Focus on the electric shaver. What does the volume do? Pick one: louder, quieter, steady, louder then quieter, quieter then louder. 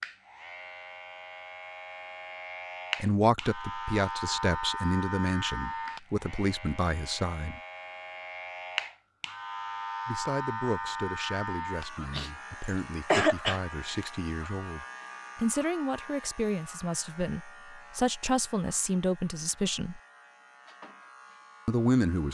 quieter.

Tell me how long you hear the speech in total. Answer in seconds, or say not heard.
15 s.